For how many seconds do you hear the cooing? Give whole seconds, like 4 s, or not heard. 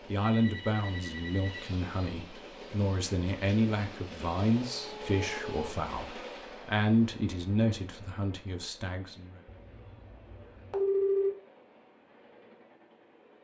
not heard.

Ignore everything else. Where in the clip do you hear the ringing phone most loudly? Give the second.
11 s.